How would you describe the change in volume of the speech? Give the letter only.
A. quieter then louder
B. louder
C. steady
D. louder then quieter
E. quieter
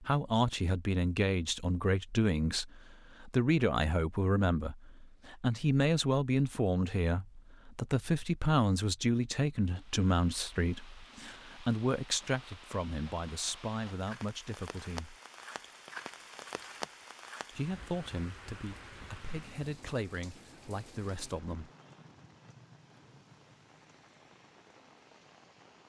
E.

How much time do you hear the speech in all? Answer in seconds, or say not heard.
19 s.